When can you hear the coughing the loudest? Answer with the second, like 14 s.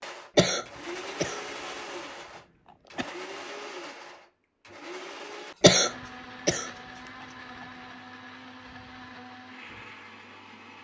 6 s.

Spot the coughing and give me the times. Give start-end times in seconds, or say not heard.
0.3-1.4, 5.6-6.7.